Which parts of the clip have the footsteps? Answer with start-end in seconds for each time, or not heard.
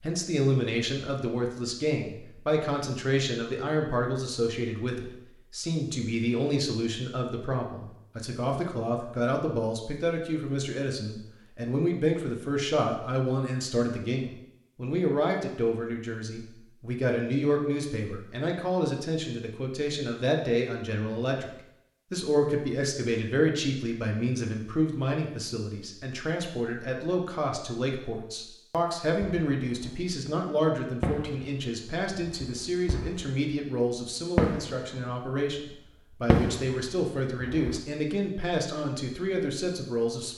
not heard.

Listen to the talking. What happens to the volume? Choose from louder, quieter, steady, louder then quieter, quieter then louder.
steady.